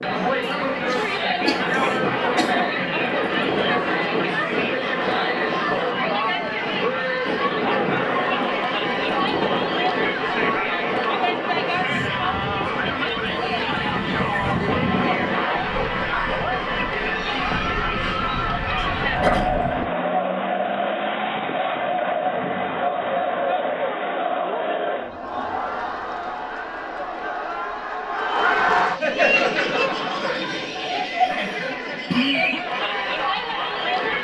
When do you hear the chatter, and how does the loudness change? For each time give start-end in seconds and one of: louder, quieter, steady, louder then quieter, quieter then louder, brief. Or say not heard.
0.0-34.1 steady.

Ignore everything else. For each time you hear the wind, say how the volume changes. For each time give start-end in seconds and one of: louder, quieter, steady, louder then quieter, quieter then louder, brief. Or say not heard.
0.0-19.9 quieter.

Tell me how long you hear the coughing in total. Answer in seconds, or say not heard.
4 s.